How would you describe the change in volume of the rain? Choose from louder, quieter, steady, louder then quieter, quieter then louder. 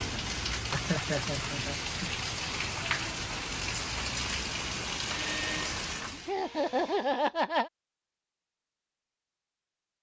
steady.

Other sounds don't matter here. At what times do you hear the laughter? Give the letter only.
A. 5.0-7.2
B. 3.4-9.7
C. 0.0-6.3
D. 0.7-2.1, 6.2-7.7
D.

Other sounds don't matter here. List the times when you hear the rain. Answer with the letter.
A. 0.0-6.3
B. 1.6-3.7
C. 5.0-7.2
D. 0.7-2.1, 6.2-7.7
A.